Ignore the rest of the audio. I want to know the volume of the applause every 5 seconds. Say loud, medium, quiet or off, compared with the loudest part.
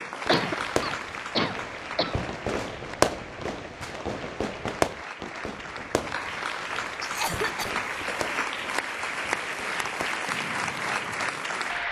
medium, loud, loud.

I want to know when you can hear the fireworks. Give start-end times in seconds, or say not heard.
0.2-11.4.